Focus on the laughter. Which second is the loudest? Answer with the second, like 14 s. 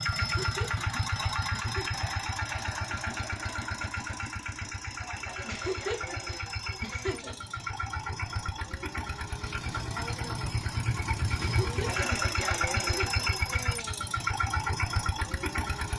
6 s.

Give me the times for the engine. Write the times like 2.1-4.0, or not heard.
0.0-15.9.